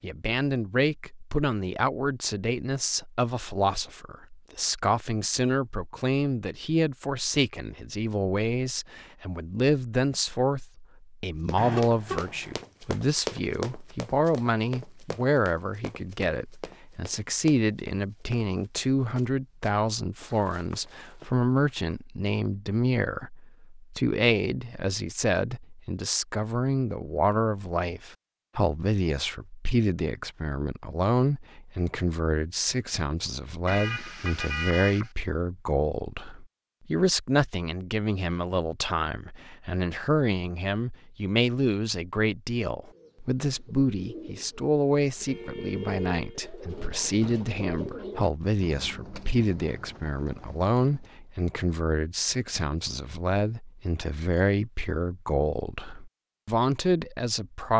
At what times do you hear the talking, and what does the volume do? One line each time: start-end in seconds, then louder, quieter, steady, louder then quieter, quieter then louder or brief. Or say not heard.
0.0-57.7 steady.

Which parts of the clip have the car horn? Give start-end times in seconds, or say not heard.
11.6-12.6, 33.6-35.1, 45.2-46.4.